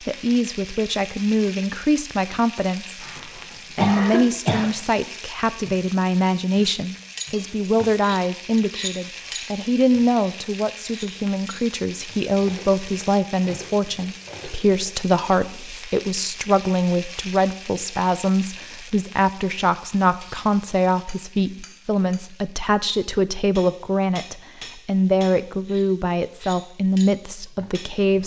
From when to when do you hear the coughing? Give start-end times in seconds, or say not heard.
3.0-4.7.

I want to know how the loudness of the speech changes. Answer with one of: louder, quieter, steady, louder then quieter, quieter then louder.
steady.